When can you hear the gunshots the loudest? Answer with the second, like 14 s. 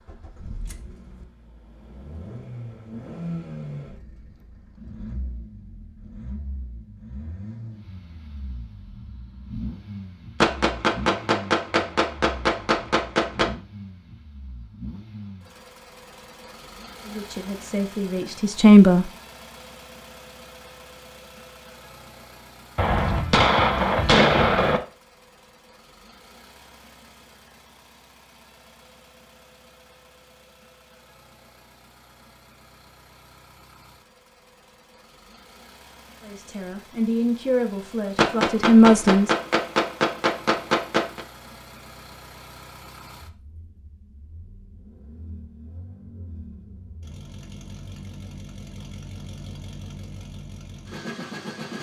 24 s.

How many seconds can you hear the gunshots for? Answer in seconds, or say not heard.
8 s.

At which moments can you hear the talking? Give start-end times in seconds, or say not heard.
17.1-19.1, 36.2-39.3.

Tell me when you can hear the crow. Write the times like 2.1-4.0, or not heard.
not heard.